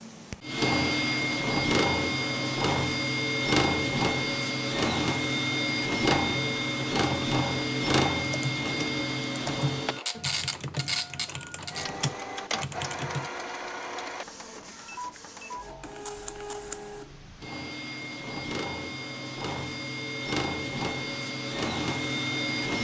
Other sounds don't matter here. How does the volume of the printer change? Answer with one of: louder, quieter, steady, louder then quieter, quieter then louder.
quieter then louder.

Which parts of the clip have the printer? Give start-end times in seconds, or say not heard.
0.0-22.7.